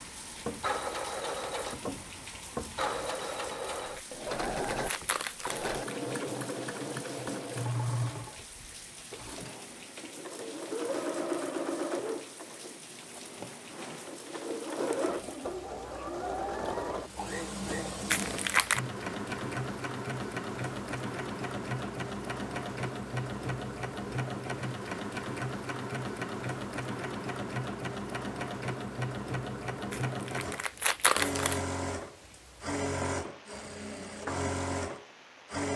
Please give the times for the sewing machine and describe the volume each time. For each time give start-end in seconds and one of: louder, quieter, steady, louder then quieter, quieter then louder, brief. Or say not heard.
0.0-35.7 steady.